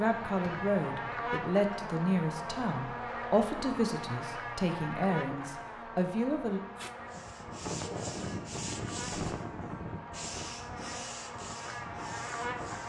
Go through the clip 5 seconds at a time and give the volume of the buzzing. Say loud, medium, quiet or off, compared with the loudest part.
loud, medium, loud.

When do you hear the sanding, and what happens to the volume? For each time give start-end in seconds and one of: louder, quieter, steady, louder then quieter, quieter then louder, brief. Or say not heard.
7.0-12.8 quieter.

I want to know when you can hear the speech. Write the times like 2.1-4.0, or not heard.
0.0-6.6.